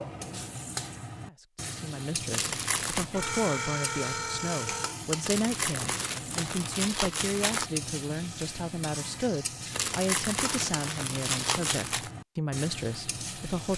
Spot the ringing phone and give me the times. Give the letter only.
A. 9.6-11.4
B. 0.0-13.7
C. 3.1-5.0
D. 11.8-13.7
C.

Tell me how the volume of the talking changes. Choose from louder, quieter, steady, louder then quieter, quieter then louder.
steady.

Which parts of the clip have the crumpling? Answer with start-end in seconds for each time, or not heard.
2.3-3.1, 5.2-7.7, 9.7-12.1.